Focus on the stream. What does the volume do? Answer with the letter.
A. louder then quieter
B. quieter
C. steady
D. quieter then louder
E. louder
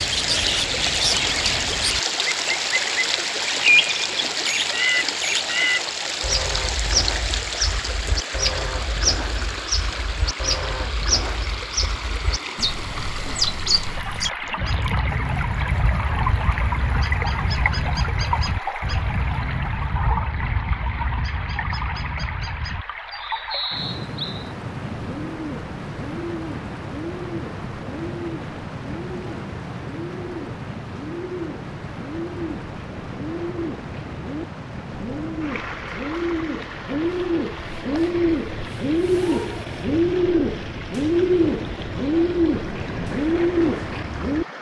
B.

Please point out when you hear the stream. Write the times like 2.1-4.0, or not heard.
0.0-44.5.